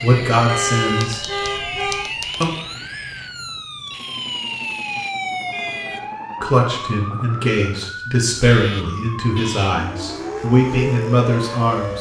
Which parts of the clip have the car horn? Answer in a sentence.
The car horn can be heard from 0.5 to 2.1 s, from 5.5 to 6.2 s and from 8.3 to 9.8 s.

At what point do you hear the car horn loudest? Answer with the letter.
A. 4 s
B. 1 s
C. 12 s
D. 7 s
B.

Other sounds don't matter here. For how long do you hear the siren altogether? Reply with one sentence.
The siren can be heard for 12 seconds in total.